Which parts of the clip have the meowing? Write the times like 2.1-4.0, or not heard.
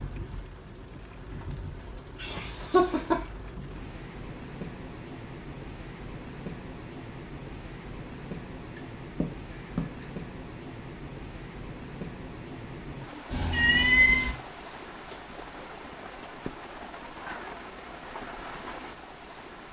2.2-3.2, 8.8-9.8, 13.3-14.3.